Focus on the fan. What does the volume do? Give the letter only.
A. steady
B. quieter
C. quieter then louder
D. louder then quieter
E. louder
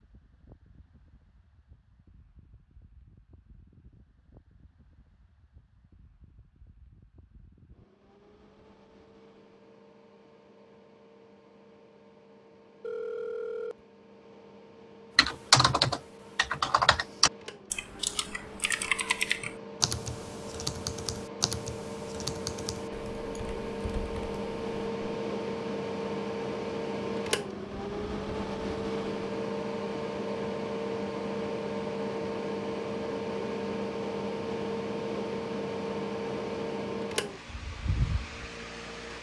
E.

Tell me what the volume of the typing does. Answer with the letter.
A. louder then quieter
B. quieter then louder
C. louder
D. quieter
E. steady
D.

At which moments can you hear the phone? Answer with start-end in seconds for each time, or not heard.
12.8-13.8.